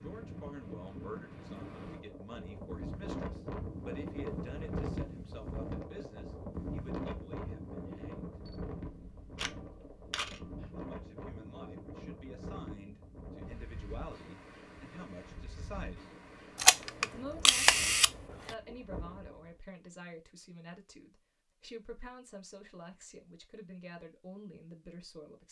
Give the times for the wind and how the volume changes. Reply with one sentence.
The wind can be heard from 0.0 to 19.6 s, getting quieter.